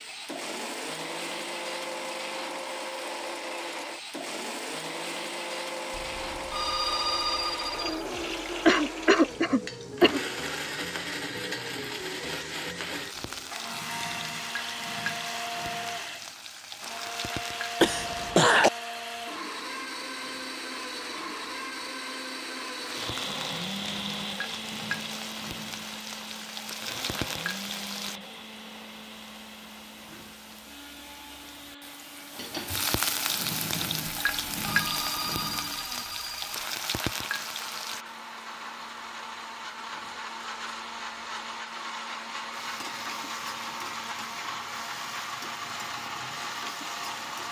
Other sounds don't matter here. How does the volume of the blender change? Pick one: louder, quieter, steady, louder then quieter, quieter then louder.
quieter then louder.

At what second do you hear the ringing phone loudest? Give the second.
7 s.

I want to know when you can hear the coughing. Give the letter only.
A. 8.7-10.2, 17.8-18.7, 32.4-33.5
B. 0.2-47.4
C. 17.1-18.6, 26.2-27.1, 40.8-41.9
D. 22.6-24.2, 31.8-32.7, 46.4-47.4
A.